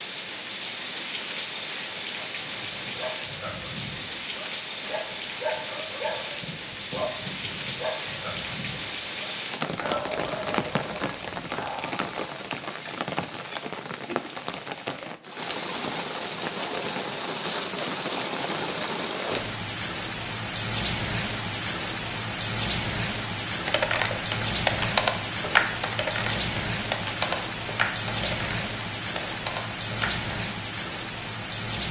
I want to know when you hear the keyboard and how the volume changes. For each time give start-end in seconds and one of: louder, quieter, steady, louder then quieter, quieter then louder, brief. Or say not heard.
23.6-30.2 quieter.